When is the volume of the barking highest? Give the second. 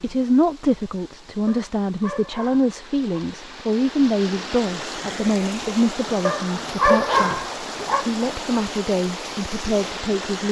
7 s.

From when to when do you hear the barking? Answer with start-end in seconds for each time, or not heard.
1.4-3.2, 6.2-8.1.